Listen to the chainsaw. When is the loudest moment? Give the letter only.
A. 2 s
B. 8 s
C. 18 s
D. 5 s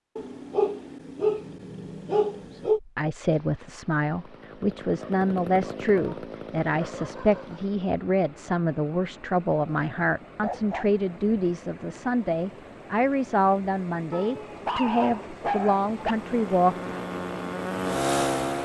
C.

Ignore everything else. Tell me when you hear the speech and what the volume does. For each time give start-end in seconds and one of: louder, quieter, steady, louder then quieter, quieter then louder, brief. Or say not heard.
2.5-16.9 steady.